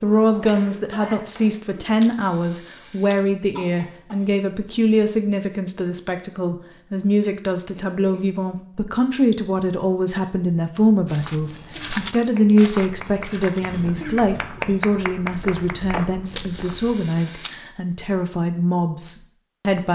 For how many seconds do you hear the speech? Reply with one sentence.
The speech can be heard for 20 seconds in total.